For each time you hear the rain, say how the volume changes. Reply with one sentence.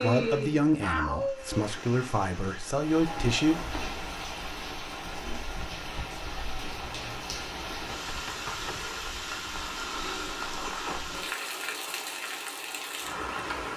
You can hear the rain from 0.0 to 13.7 s, getting louder.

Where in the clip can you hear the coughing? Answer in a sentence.
The coughing can't be heard in this clip.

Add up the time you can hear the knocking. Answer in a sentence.
The knocking can be heard for 2 seconds in total.